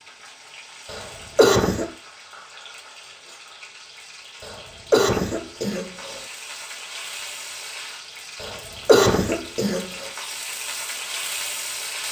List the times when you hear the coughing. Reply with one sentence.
You can hear the coughing from 0.8 to 1.9 s, from 4.4 to 6.2 s and from 8.4 to 10.1 s.